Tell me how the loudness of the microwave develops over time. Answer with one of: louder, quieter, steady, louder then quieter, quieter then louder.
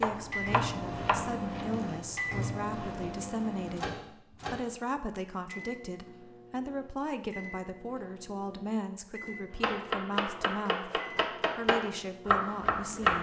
quieter.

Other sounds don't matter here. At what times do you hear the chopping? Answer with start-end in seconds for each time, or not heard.
0.0-1.8, 9.5-13.1.